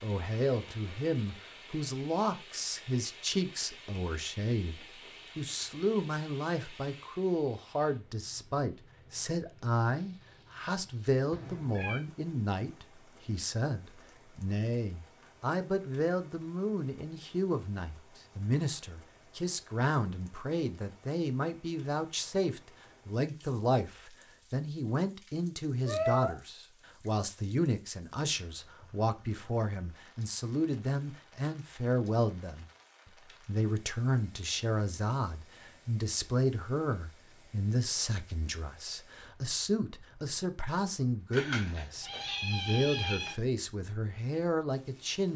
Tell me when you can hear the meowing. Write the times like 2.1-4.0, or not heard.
11.3-12.0, 25.9-26.4, 41.3-43.4.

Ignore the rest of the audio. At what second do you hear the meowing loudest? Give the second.
26 s.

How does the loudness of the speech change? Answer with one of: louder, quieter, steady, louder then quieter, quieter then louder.
steady.